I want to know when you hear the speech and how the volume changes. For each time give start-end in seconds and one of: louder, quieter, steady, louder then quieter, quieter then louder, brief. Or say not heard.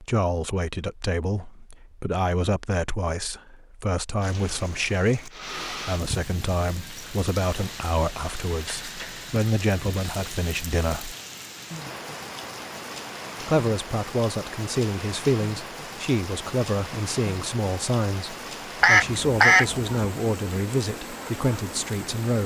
0.0-11.2 steady
13.4-22.4 steady.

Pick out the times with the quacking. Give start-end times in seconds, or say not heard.
18.8-19.9.